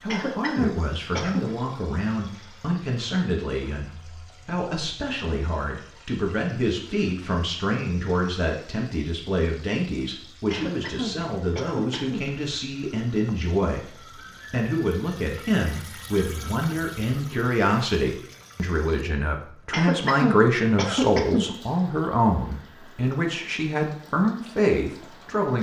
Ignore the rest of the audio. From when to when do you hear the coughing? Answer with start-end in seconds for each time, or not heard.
0.1-1.4, 10.5-12.2, 19.7-21.4.